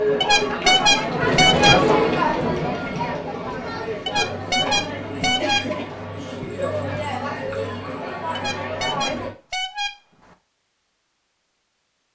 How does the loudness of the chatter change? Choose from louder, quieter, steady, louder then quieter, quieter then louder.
quieter.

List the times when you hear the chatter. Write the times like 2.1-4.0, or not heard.
0.0-9.3.